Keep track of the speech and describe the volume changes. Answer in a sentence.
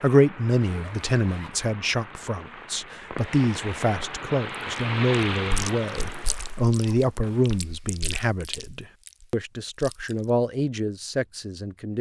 The volume of the speech stays about the same.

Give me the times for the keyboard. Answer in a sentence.
You can't hear the keyboard here.